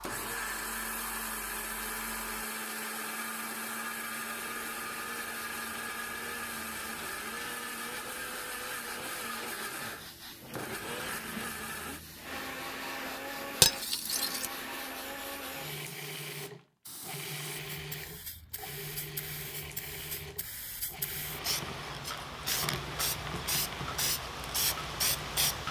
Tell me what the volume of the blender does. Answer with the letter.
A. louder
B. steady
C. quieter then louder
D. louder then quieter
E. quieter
E.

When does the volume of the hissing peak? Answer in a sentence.
The volume of the hissing peaks at 25 seconds.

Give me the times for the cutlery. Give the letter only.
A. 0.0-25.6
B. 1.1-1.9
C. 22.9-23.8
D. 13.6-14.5
D.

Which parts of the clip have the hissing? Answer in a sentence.
The hissing can be heard from 0.0 to 25.6 s.